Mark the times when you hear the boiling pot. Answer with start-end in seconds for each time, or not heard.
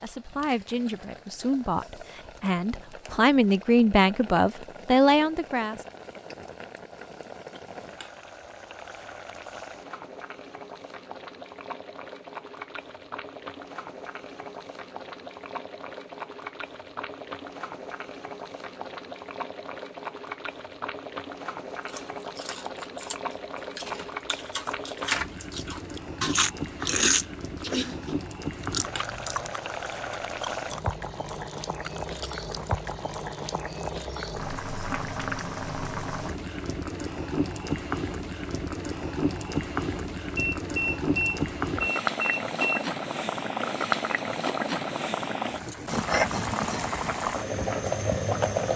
0.0-48.7.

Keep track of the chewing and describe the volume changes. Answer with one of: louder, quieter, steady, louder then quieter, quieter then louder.
louder then quieter.